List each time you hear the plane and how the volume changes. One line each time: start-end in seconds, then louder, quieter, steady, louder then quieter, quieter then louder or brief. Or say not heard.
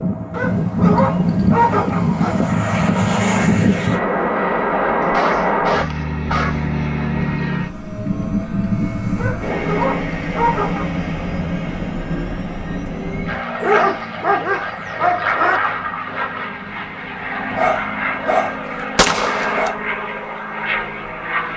0.0-21.5 quieter.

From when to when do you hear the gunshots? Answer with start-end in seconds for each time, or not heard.
18.9-19.6.